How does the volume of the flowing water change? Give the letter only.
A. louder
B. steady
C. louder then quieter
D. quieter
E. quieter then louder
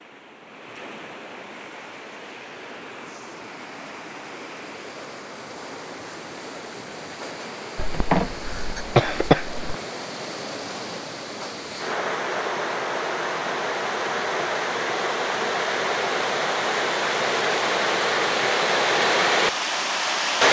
A.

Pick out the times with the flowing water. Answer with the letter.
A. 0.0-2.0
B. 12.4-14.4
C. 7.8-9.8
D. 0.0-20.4
D.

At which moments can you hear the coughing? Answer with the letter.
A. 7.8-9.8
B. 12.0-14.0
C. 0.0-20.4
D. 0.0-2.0
A.